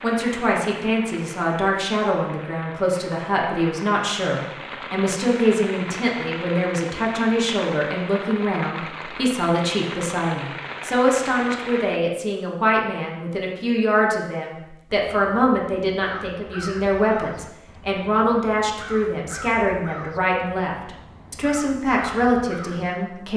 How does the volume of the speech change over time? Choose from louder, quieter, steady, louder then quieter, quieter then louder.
steady.